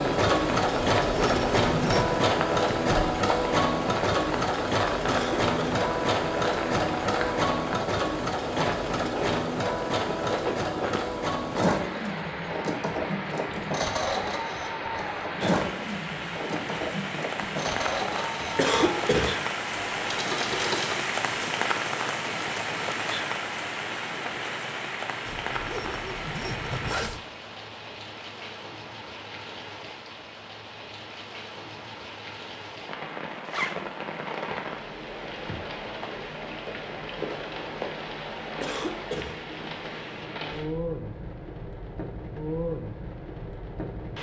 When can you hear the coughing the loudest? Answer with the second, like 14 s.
19 s.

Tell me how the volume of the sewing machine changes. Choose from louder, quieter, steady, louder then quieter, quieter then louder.
quieter.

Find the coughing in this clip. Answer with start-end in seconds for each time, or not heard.
5.0-5.8, 18.6-19.4, 38.6-39.4.